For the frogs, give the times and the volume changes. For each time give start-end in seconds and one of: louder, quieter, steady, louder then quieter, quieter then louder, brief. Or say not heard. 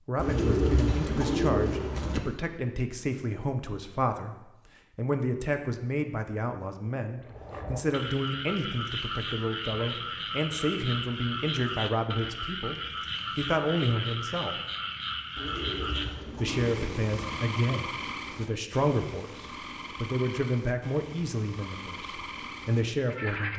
7.2-23.5 quieter.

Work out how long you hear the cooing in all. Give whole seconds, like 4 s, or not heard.
4 s.